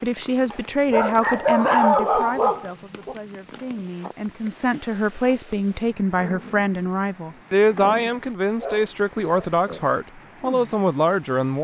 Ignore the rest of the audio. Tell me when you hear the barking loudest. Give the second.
2 s.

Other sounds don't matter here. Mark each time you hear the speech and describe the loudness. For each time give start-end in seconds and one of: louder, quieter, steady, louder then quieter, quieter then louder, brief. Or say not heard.
0.0-11.6 quieter then louder.